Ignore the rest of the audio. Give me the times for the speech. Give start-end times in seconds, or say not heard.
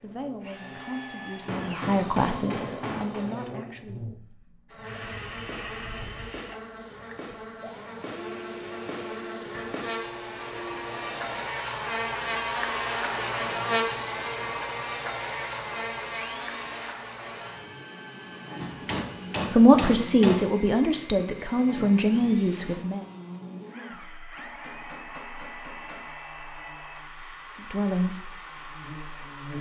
0.0-4.2, 19.5-23.1, 27.7-28.2.